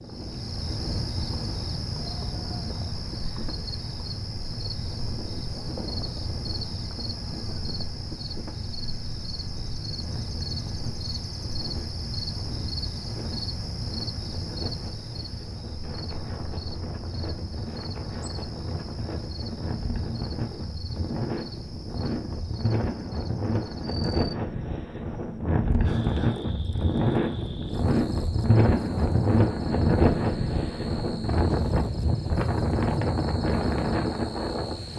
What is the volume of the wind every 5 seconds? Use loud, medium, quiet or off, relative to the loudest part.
quiet, quiet, quiet, quiet, medium, loud, loud.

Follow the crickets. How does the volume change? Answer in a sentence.
The volume of the crickets goes down.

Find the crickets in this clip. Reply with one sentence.
You can hear the crickets from 0.0 to 34.9 s.